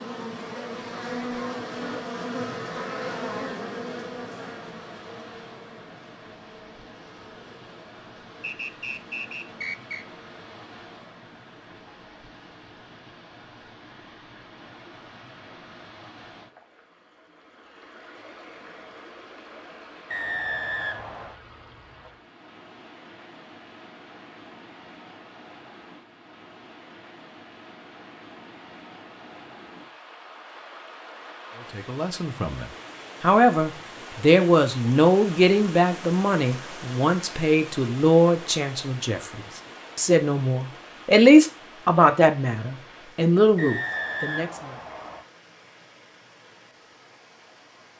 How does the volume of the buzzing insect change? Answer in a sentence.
The volume of the buzzing insect goes down.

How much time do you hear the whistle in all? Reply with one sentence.
You can hear the whistle for 5 seconds altogether.